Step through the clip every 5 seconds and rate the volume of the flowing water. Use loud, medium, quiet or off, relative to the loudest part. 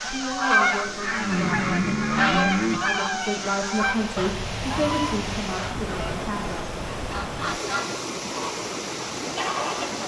medium, loud.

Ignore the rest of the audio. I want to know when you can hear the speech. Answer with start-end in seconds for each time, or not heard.
0.0-6.7.